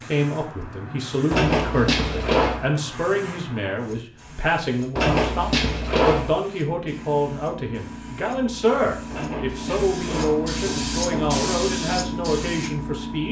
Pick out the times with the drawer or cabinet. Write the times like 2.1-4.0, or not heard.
1.3-2.7, 5.0-6.3, 9.1-11.6.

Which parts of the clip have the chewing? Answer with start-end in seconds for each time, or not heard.
not heard.